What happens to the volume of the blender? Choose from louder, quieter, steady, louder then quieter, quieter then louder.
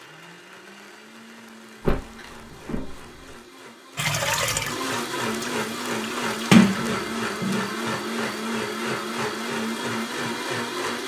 louder.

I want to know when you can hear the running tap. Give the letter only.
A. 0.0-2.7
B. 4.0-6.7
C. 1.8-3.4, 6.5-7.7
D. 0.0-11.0
B.